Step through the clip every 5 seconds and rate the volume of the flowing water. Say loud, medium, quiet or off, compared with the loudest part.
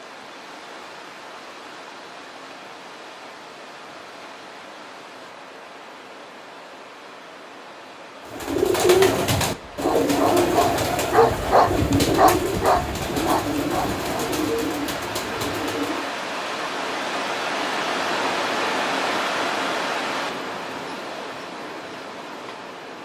quiet, quiet, medium, loud, medium.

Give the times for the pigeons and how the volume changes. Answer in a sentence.
You can hear the pigeons from 8.2 to 16.1 s, getting quieter.